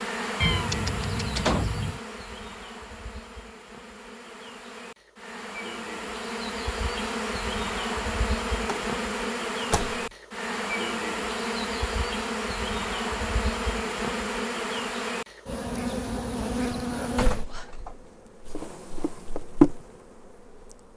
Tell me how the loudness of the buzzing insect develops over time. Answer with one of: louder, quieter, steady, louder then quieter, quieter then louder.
louder.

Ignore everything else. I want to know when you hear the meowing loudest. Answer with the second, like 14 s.
1 s.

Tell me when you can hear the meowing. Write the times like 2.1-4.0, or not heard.
0.4-2.0.